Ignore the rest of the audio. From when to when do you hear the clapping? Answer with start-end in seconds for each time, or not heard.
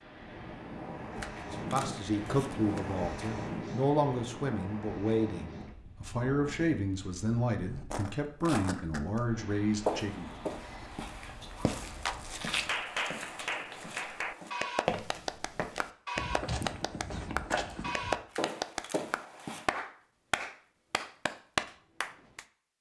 12.1-22.4.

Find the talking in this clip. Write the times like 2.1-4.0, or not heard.
1.5-10.3.